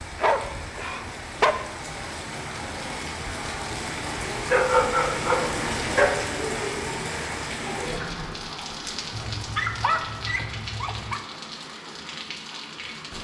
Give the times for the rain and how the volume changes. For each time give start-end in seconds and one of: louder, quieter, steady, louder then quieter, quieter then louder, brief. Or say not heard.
0.0-13.1 louder then quieter.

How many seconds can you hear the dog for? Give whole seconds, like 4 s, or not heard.
5 s.